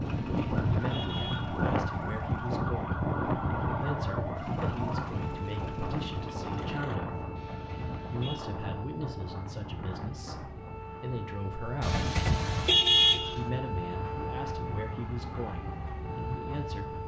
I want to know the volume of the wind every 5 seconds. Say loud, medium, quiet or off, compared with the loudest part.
loud, medium, quiet, quiet.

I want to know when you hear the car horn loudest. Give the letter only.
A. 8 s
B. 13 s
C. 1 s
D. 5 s
B.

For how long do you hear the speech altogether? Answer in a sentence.
The speech can be heard for 15 seconds in total.